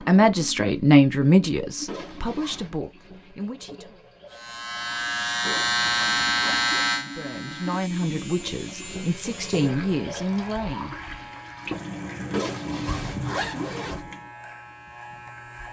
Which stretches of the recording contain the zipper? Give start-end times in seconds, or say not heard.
1.9-2.8, 5.4-6.9, 12.3-14.0.